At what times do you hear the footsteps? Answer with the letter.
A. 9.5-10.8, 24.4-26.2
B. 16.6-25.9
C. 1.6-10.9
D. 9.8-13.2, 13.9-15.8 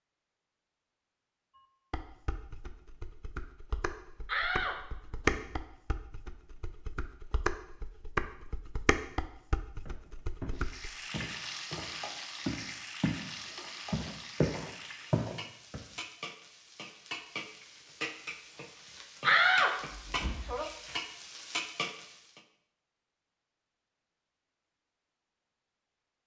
D.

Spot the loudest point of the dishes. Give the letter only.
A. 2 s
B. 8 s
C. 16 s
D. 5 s
D.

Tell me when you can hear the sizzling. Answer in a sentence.
You can hear the sizzling from 10.6 to 22.4 s.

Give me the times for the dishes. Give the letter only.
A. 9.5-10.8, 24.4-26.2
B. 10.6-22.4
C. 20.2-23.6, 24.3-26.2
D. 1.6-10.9
D.